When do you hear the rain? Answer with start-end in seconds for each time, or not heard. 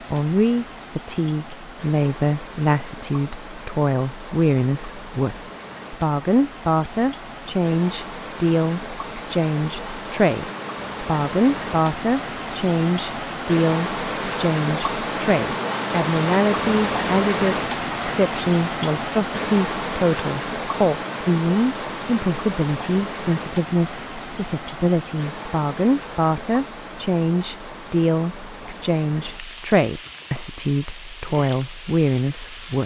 0.0-32.8.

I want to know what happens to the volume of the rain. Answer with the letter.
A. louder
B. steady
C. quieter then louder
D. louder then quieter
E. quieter
D.